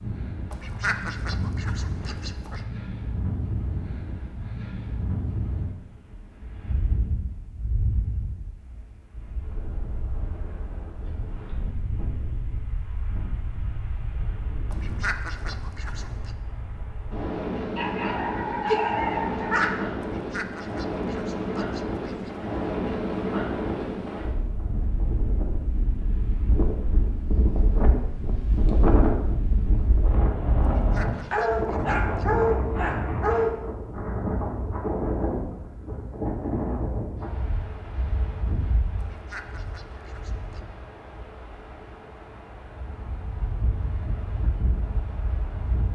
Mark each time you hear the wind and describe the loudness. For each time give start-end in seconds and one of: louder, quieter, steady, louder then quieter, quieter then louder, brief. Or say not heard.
0.0-45.8 louder then quieter.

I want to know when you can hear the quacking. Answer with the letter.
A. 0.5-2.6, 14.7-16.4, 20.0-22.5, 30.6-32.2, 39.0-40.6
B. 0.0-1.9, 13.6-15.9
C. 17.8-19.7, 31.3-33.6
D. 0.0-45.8
A.